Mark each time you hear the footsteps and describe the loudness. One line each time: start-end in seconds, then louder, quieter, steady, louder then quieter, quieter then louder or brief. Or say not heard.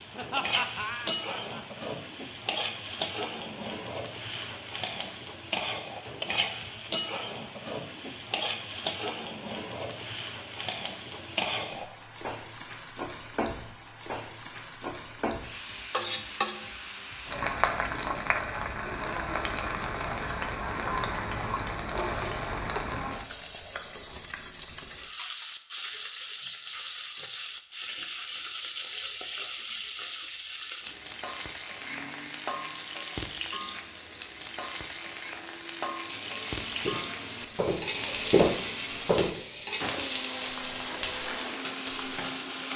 36.7-42.2 louder then quieter.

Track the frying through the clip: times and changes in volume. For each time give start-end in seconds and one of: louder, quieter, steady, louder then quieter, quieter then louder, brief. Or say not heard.
0.0-42.7 steady.